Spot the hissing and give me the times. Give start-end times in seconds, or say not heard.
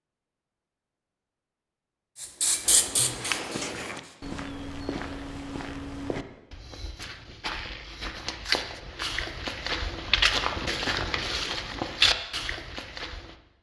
2.2-4.2.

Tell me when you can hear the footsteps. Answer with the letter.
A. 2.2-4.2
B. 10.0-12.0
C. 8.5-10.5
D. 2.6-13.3
D.